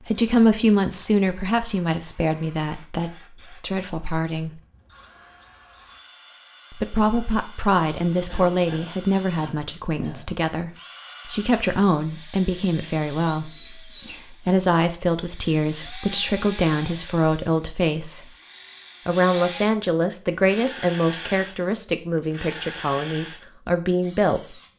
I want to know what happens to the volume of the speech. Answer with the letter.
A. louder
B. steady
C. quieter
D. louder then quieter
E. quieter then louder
B.